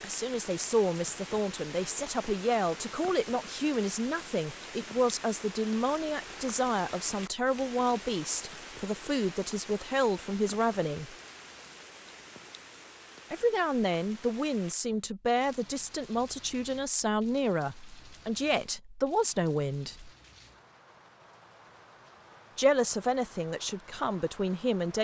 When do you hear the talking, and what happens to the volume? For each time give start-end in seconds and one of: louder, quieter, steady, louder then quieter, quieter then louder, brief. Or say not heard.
0.0-11.2 steady
13.3-20.1 steady
22.6-24.9 brief.